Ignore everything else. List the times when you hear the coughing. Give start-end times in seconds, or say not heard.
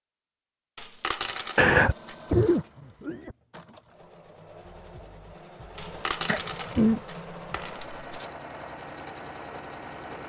1.6-3.4, 6.2-7.0.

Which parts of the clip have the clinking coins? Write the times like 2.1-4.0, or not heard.
0.8-2.4, 5.8-8.3.